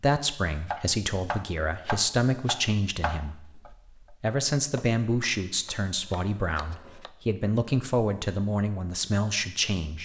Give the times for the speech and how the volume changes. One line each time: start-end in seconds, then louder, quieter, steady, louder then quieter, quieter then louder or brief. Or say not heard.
0.0-10.0 steady.